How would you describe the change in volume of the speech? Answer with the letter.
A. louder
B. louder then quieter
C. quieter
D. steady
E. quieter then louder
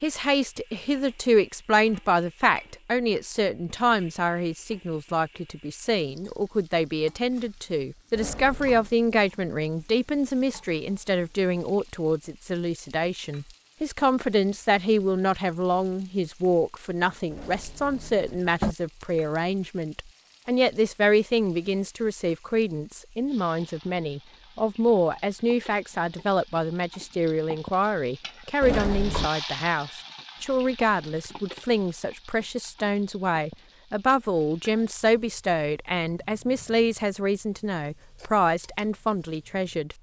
D.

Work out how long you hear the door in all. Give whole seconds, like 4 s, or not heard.
3 s.